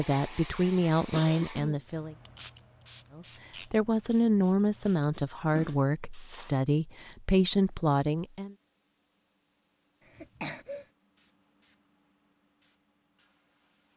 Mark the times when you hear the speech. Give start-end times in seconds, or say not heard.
0.0-2.1, 3.1-8.6.